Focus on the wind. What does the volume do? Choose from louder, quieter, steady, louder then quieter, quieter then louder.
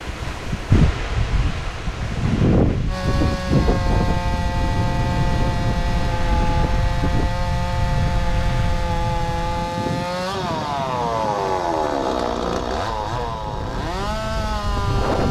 quieter.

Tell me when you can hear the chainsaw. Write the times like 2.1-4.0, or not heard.
2.9-15.2.